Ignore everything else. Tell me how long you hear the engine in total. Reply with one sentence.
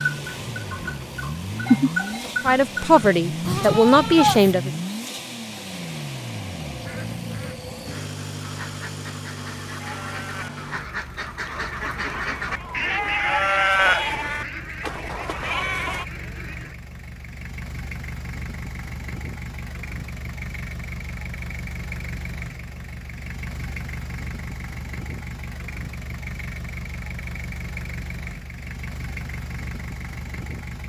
The engine can be heard for 31 seconds in total.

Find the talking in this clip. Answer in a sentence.
You can hear the talking from 2.4 to 4.7 s.